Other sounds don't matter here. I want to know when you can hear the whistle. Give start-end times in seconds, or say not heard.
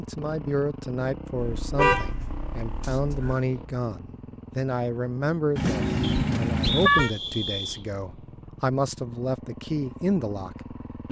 2.8-3.5, 6.0-7.8.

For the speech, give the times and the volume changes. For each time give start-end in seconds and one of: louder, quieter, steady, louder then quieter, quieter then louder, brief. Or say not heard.
0.0-11.0 steady.